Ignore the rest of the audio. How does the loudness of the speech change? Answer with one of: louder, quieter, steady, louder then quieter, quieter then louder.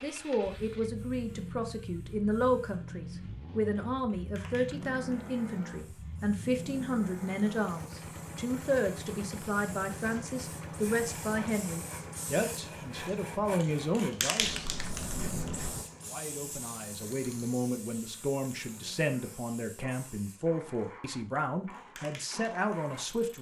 steady.